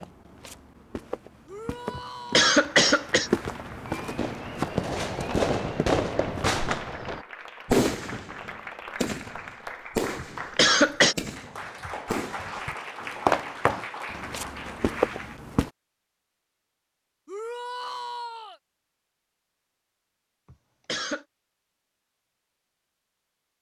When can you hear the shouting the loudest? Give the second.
18 s.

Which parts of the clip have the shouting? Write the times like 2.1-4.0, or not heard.
1.4-2.5, 17.2-18.6.